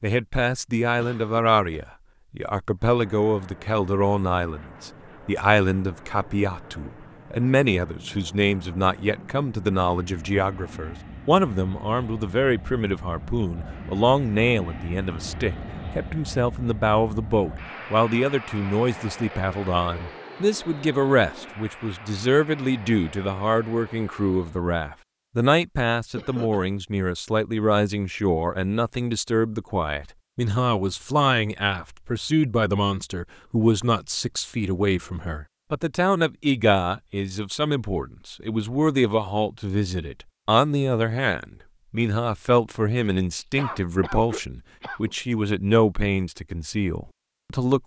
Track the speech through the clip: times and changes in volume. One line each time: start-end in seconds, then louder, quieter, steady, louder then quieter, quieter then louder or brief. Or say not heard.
0.0-47.8 steady.